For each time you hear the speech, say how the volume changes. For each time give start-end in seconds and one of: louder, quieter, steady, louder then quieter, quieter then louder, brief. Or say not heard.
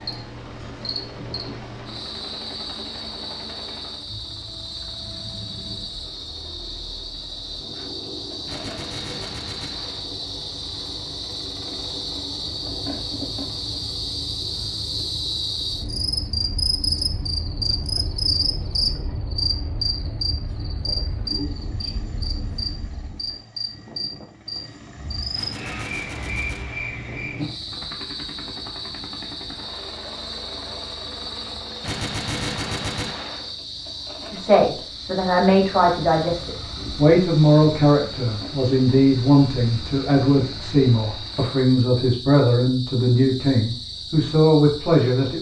34.3-45.3 steady.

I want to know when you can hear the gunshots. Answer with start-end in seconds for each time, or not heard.
8.4-10.0, 25.4-26.9, 31.8-33.4.